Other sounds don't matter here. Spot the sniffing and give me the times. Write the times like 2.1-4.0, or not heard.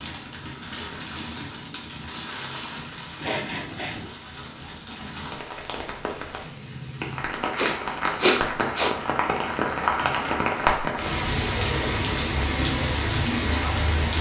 3.2-4.0, 7.5-8.9.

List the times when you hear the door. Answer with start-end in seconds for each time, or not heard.
not heard.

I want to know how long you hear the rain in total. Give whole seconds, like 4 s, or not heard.
14 s.